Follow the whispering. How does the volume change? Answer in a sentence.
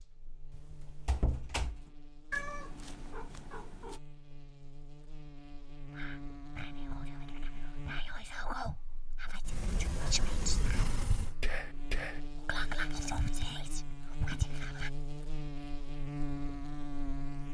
The volume of the whispering goes up.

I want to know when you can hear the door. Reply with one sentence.
You can hear the door from 0.5 to 1.9 s and from 9.4 to 11.3 s.